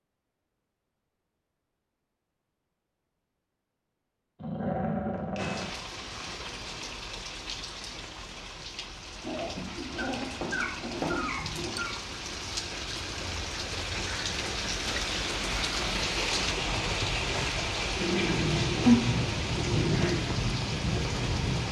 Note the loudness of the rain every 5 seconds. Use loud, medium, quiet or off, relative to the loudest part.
off, medium, medium, loud, loud.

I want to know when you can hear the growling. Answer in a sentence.
The growling can be heard from 4.3 to 5.7 s, from 9.2 to 11.9 s and from 18.0 to 20.2 s.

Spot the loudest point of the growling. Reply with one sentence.
The volume of the growling peaks at 19 seconds.